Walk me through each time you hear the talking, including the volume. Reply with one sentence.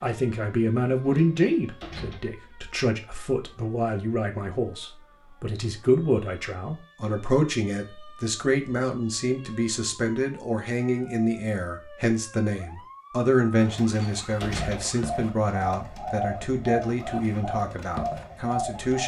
The talking can be heard from 0.0 to 19.0 s, at a steady volume.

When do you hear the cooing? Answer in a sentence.
The cooing can be heard from 14.6 to 19.0 s.